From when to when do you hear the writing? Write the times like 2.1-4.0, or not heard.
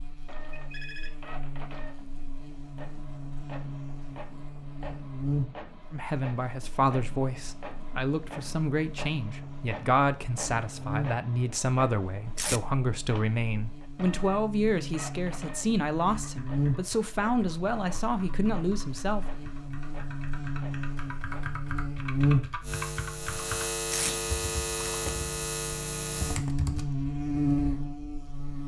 not heard.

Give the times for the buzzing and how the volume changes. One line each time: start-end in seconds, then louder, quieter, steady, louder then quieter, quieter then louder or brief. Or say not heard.
0.0-28.6 louder.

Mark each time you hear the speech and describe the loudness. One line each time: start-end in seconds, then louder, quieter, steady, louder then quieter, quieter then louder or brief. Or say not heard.
5.9-19.4 steady.